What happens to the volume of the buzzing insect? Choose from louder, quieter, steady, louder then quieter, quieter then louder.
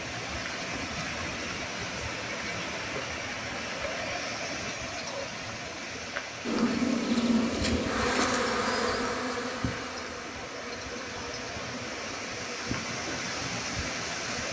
quieter.